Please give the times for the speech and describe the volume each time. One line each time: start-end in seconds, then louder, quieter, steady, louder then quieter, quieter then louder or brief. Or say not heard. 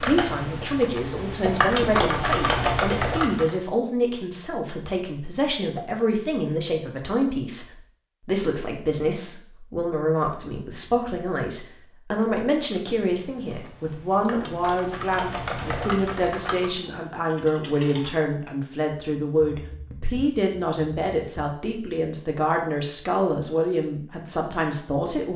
0.0-25.3 steady.